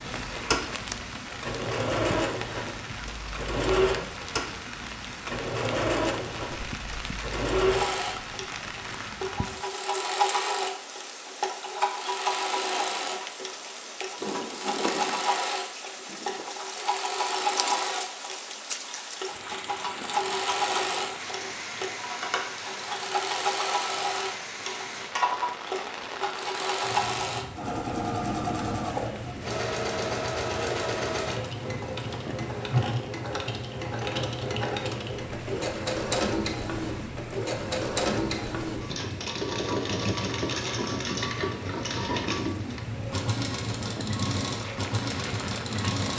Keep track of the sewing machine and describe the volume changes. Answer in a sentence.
The volume of the sewing machine stays about the same.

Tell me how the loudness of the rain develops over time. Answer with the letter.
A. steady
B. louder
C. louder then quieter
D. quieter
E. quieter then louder
A.